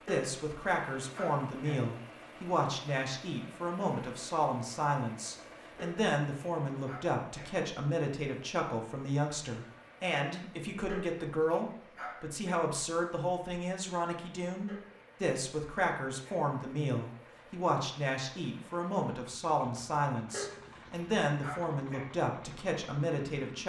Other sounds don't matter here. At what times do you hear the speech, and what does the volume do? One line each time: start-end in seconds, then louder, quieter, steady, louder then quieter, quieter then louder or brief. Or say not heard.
0.1-23.6 steady.